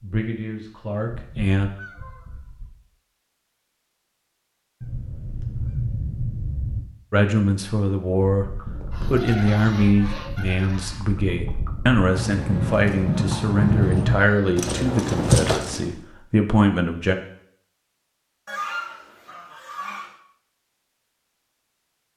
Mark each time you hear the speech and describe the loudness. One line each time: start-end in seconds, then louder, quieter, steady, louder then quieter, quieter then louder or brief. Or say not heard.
0.0-1.7 brief
7.1-17.1 steady.